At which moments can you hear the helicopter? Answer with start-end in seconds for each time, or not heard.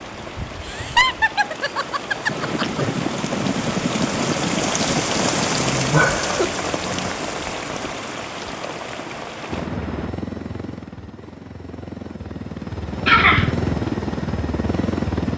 2.2-7.2, 9.5-15.3.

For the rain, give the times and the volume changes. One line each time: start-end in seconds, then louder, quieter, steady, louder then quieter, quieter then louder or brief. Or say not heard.
0.0-10.1 louder then quieter.